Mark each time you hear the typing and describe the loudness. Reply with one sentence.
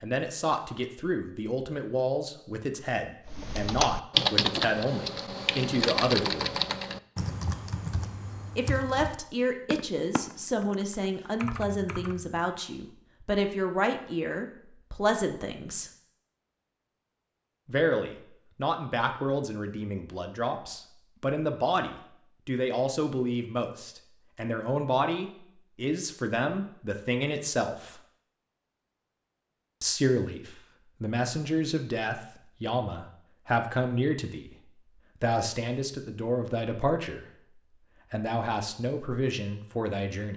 You can hear the typing from 3.2 to 12.4 s, getting quieter.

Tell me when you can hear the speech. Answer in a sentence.
The speech can be heard from 0.0 to 6.6 s, from 8.6 to 15.9 s, from 17.6 to 28.0 s, from 29.8 to 34.5 s, from 35.2 to 37.2 s and from 38.1 to 40.3 s.